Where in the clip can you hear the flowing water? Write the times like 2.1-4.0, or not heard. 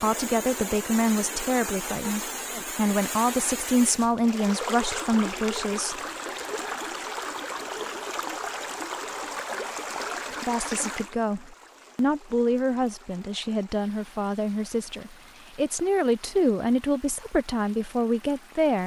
0.0-18.8.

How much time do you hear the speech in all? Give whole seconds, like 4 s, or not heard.
14 s.